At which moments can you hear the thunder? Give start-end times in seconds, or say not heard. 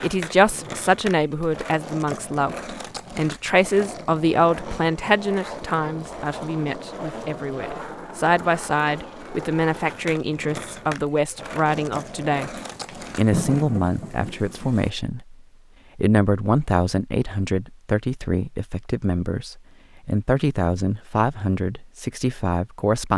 12.6-14.9.